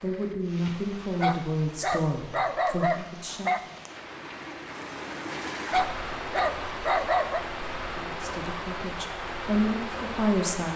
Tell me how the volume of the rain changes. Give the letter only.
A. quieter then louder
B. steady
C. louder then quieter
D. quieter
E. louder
E.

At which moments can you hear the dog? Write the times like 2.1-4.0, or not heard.
1.2-3.6, 5.7-7.5.